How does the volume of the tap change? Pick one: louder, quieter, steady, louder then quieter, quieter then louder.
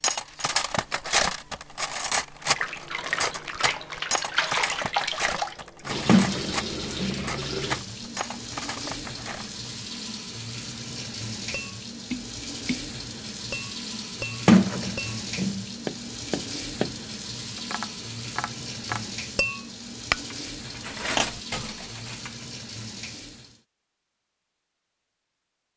quieter.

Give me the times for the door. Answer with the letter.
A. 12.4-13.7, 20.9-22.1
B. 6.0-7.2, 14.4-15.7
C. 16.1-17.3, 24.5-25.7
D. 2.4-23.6
B.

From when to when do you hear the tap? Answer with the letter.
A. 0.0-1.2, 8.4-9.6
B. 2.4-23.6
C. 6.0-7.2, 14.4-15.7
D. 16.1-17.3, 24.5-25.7
B.